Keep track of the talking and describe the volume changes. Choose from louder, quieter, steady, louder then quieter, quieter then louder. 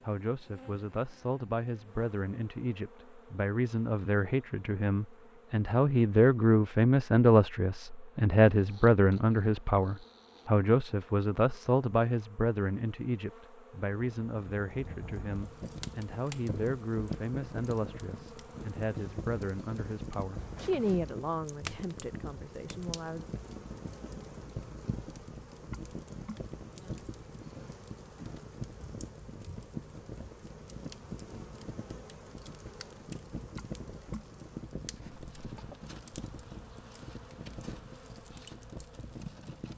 louder then quieter.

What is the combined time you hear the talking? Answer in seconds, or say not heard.
23 s.